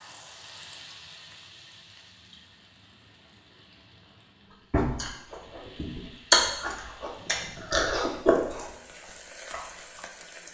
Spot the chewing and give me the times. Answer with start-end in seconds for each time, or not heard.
4.7-10.0.